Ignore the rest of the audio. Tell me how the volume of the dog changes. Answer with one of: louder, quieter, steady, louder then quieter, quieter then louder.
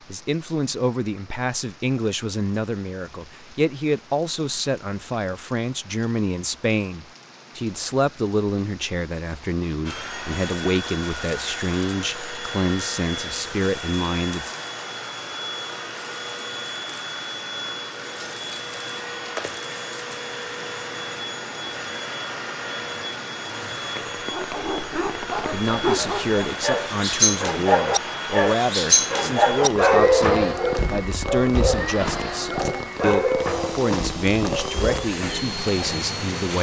louder then quieter.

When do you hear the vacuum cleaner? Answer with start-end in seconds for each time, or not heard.
9.8-36.5.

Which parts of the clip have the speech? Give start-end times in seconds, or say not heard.
0.1-14.6, 25.4-36.5.